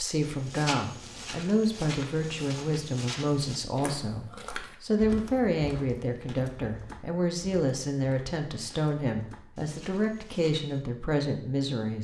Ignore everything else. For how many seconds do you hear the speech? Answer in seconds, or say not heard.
12 s.